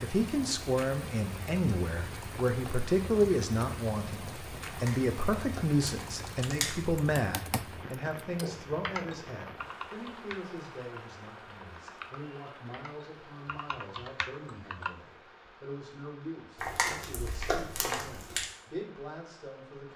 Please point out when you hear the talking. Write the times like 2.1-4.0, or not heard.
0.0-19.9.